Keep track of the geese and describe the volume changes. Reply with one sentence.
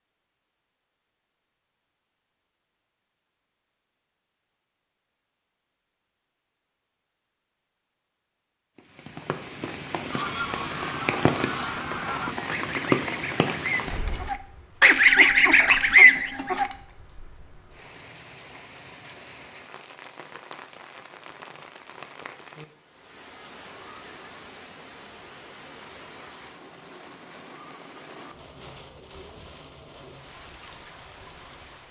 The volume of the geese goes up.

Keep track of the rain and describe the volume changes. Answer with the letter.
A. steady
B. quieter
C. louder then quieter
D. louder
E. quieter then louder
B.